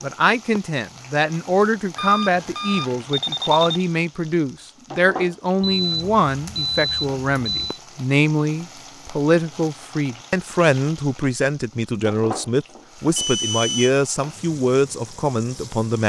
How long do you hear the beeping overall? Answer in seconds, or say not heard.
5 s.